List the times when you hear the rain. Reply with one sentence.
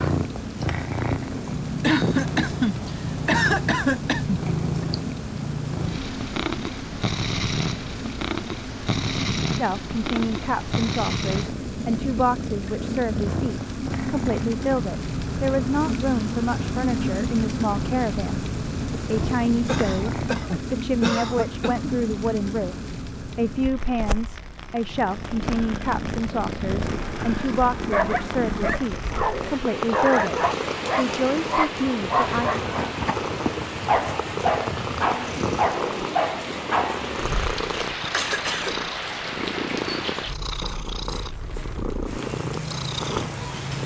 The rain can be heard from 0.0 to 43.8 s.